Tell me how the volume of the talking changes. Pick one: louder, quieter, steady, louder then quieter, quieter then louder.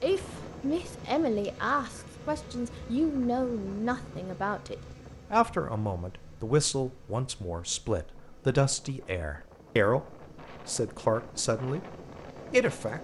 steady.